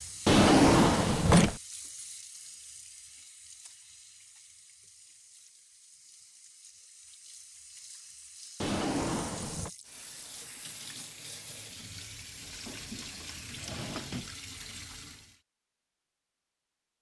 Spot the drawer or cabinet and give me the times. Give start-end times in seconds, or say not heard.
0.2-1.6, 8.6-9.7, 12.5-14.3.